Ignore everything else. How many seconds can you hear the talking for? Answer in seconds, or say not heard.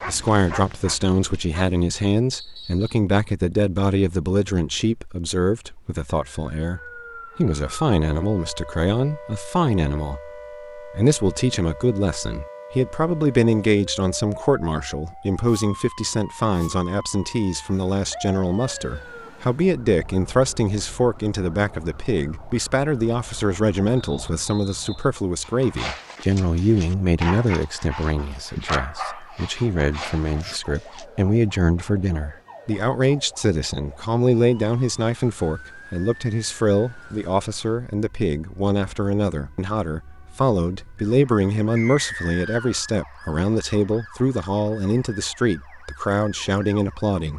47 s.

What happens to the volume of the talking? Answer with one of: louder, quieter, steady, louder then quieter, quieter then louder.
steady.